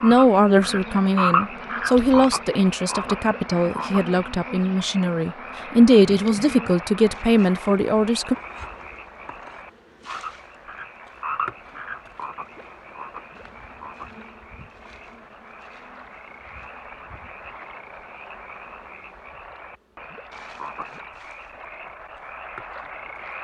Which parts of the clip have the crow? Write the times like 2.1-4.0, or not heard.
not heard.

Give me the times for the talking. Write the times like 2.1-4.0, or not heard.
0.0-8.3.